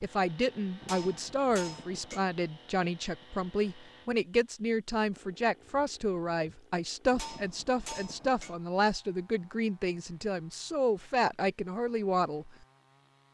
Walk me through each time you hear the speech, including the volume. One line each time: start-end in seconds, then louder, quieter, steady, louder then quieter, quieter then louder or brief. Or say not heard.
0.0-12.5 steady.